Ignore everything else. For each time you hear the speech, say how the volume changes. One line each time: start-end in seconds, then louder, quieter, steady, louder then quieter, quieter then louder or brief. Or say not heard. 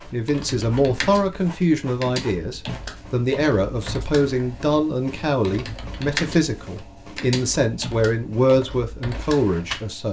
0.1-10.0 steady.